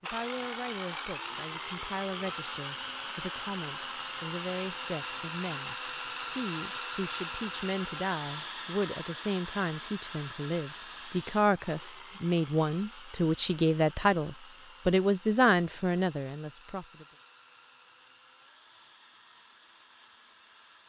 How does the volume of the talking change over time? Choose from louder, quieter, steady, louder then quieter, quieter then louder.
louder.